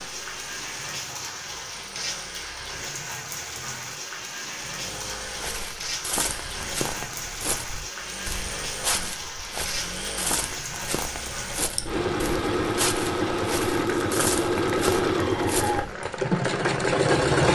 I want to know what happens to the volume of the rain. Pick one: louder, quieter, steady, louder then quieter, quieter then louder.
steady.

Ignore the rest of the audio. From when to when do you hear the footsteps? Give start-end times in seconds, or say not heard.
5.2-15.8.